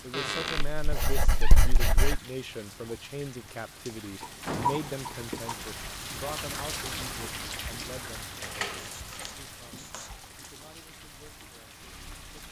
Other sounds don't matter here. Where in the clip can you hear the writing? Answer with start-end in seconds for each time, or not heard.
0.8-2.2, 4.2-5.7, 8.8-10.2.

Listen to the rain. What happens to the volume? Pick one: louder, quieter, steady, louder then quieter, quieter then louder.
louder then quieter.